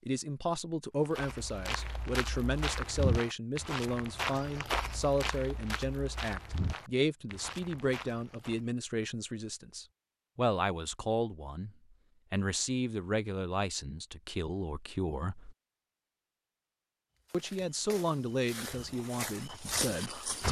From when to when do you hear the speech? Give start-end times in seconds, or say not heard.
0.1-11.7, 12.3-15.6, 17.3-20.4.